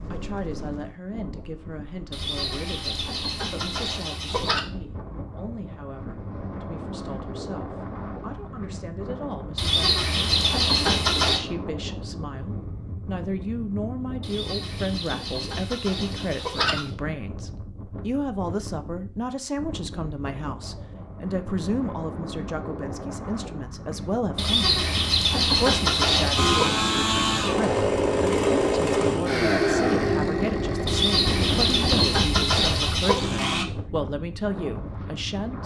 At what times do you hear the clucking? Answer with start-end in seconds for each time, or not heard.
2.1-4.7, 9.6-11.4, 14.2-16.9, 24.4-26.8, 30.9-33.2.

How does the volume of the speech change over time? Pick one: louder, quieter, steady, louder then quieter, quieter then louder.
louder.